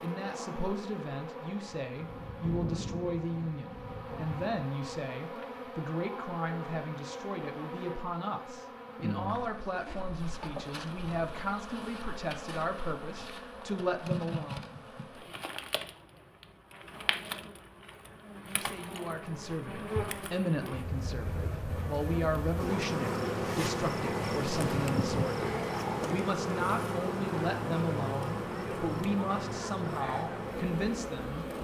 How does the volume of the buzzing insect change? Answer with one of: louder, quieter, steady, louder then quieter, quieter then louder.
louder.